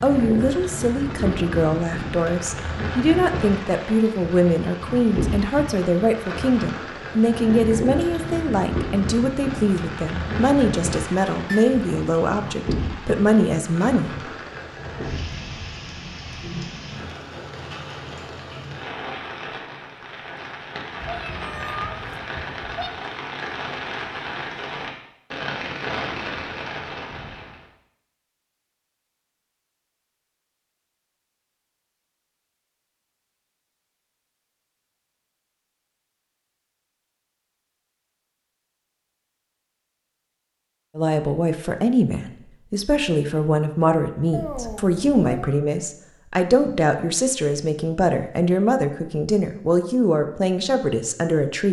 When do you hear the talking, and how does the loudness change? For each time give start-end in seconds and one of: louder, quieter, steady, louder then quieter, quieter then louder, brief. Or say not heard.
0.0-14.2 steady
41.0-51.6 steady.